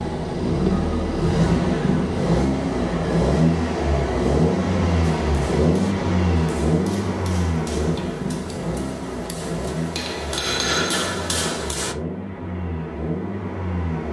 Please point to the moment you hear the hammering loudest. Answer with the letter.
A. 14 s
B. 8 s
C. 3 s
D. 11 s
D.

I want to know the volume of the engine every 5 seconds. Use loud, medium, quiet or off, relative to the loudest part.
loud, loud, medium.